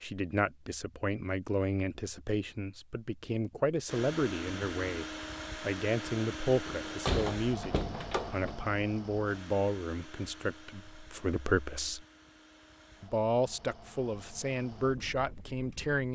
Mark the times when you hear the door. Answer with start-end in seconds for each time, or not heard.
6.7-8.6.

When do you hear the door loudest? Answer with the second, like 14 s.
7 s.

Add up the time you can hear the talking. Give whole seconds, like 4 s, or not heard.
15 s.